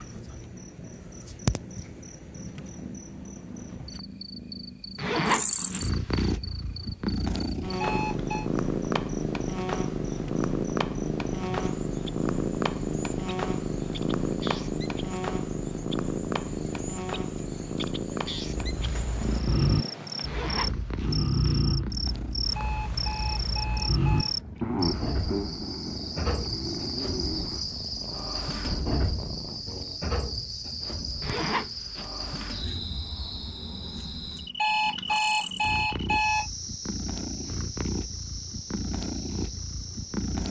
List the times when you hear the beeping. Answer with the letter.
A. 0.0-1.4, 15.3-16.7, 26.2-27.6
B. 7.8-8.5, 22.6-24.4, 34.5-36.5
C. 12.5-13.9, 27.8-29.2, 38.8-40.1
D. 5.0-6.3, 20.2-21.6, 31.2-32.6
B.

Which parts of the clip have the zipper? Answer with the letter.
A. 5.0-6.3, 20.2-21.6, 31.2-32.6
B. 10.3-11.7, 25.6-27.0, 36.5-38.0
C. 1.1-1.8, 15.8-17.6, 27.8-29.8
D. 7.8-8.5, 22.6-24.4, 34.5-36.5
A.